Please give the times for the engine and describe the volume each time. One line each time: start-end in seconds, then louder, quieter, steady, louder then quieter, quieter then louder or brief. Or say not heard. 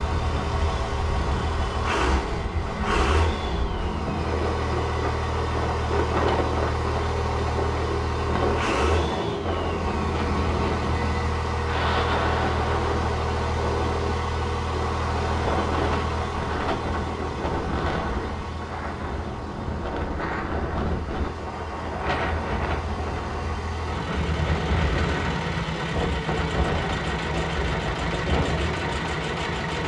0.0-29.8 quieter then louder.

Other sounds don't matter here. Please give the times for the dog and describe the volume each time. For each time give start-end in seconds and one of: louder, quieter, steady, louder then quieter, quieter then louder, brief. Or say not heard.
not heard.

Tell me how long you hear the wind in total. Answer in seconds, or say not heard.
30 s.